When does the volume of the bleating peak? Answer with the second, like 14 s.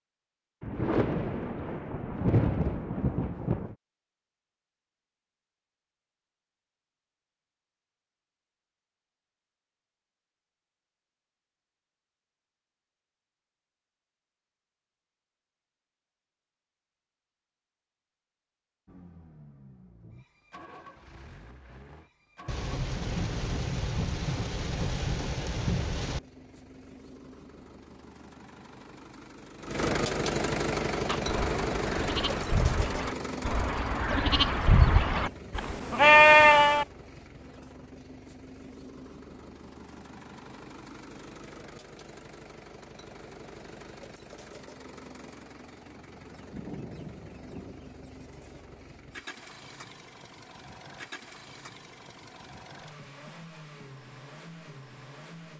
36 s.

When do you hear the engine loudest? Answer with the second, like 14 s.
30 s.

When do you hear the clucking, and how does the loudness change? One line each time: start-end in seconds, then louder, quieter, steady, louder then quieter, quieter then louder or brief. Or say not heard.
not heard.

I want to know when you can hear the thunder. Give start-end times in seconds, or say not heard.
0.6-3.8, 22.4-26.2, 46.4-47.8.